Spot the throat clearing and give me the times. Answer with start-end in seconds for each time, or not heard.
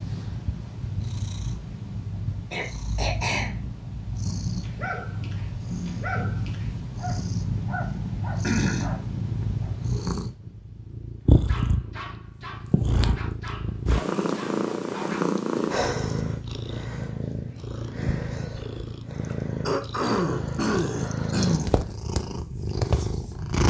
2.5-3.5, 8.4-8.9, 19.3-21.9.